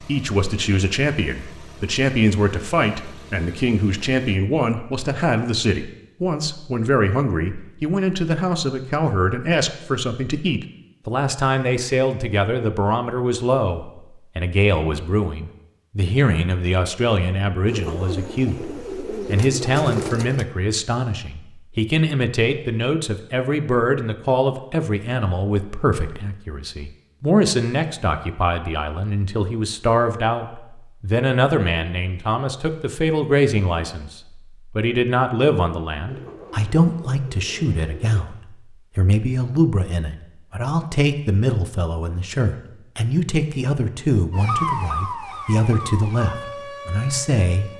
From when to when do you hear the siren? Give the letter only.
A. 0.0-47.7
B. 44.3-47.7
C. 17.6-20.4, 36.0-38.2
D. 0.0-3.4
B.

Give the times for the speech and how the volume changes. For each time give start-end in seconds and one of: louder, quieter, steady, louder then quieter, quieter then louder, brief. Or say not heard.
0.0-47.7 steady.